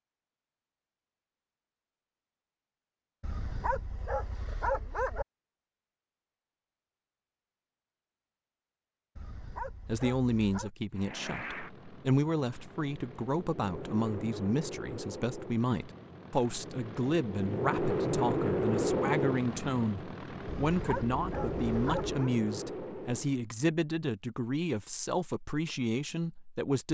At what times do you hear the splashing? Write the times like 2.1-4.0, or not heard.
not heard.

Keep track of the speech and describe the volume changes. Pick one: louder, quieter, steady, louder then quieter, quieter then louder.
steady.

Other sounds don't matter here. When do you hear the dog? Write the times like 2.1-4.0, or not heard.
3.2-5.2, 9.2-10.7, 20.4-22.3.